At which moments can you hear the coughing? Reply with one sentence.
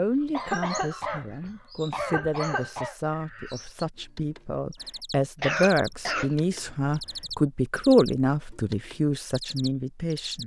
The coughing can be heard from 0.3 to 3.0 s and from 5.4 to 7.3 s.